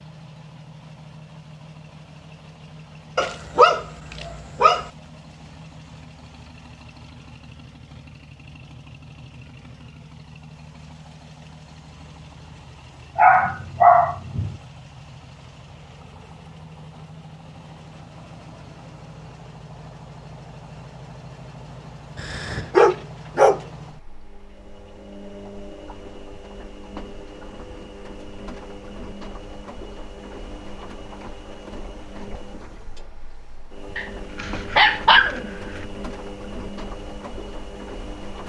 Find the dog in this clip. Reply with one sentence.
You can hear the dog from 3.1 to 4.9 s, from 13.2 to 14.6 s, from 22.1 to 23.6 s and from 34.0 to 35.9 s.